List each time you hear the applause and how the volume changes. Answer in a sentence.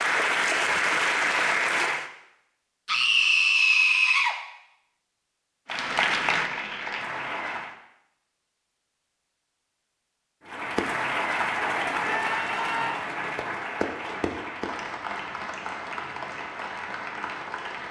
You can hear the applause briefly from 0.0 to 2.1 s; briefly from 5.7 to 7.8 s; and from 10.4 to 17.8 s, getting quieter.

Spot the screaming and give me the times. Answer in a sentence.
The screaming can be heard from 2.9 to 4.3 s and from 12.0 to 13.0 s.